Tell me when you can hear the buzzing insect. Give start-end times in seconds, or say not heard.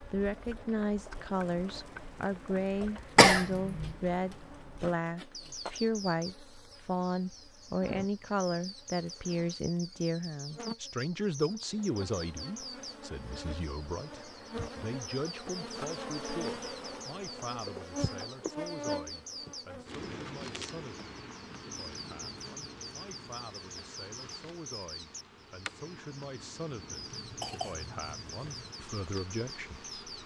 0.0-30.2.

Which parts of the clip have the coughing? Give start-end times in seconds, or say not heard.
3.1-4.0, 27.1-28.8.